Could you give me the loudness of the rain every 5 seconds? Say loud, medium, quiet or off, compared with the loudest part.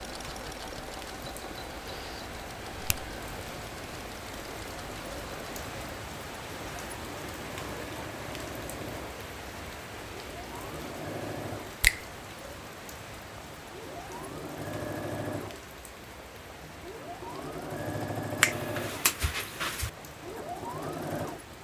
loud, loud, loud, medium, medium.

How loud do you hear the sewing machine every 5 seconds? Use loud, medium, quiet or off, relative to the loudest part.
medium, medium, loud, loud, loud.